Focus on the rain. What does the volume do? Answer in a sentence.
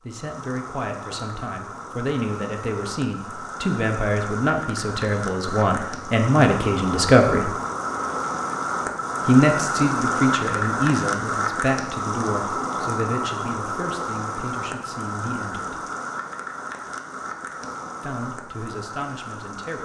The loudness of the rain goes up, then down.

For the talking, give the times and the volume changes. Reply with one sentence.
The talking can be heard from 0.1 to 7.5 s, getting louder; from 9.2 to 15.8 s, getting quieter; and briefly from 18.0 to 19.7 s.